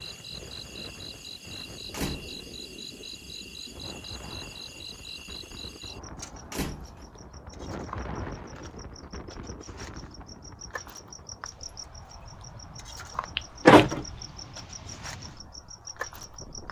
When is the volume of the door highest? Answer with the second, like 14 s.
14 s.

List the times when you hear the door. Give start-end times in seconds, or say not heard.
1.9-2.4, 6.4-7.2, 13.3-14.1.